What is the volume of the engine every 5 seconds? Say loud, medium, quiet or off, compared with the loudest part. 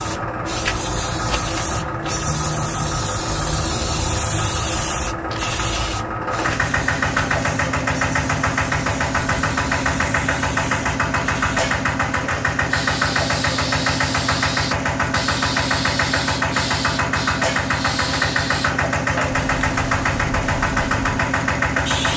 medium, loud, loud, loud, loud.